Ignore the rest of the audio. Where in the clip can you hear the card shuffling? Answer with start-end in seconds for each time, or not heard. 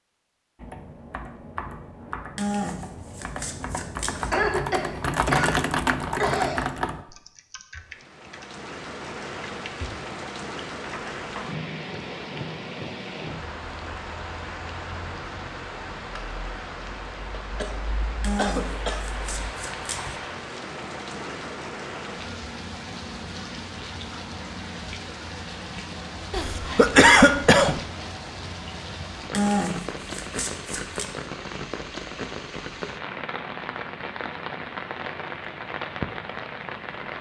2.4-4.3, 18.2-20.2, 29.3-31.1.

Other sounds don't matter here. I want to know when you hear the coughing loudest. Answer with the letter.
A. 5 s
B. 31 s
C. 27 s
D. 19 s
C.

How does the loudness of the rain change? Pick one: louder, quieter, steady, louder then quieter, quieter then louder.
steady.